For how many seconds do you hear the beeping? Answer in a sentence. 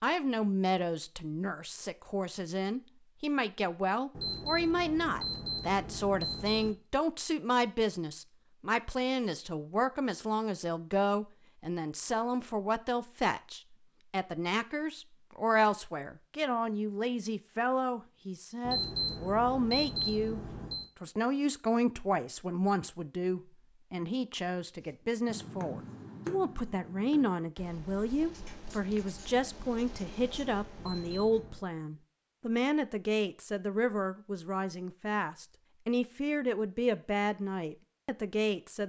The beeping can be heard for 6 seconds in total.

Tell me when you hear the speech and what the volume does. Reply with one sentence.
You can hear the speech from 0.0 to 20.4 s, at a steady volume; and from 21.0 to 38.8 s, at a steady volume.